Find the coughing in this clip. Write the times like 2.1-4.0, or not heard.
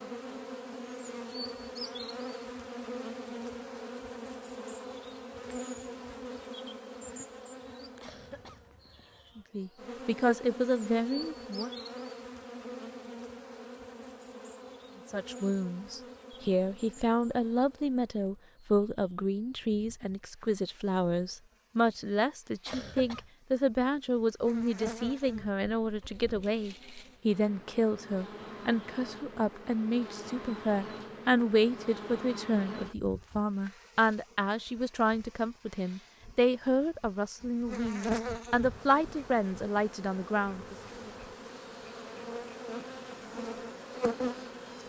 8.0-9.3, 22.6-23.3.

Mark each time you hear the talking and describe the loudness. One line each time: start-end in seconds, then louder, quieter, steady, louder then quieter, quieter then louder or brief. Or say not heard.
9.3-11.8 brief
15.1-40.8 steady.